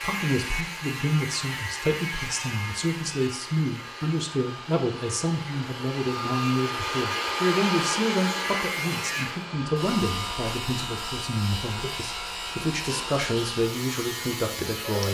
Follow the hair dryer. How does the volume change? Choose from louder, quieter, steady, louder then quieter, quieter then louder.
louder then quieter.